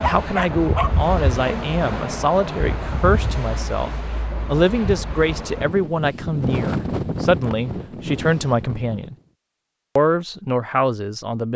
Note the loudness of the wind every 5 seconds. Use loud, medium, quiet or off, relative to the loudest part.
loud, loud, off.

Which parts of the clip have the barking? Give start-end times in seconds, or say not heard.
0.0-0.9.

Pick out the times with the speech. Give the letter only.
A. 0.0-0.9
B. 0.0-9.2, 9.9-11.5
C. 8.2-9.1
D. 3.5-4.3
B.